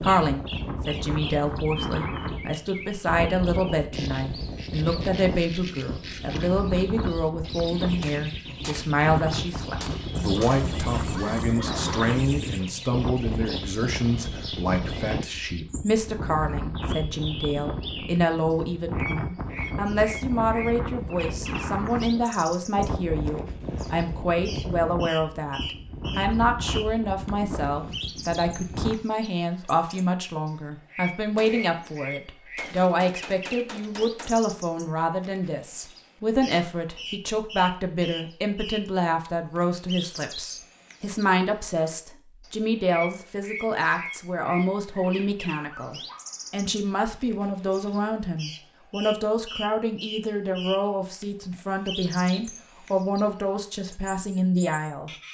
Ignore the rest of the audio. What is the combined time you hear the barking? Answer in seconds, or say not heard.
4 s.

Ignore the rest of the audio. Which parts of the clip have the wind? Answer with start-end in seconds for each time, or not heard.
0.0-28.9.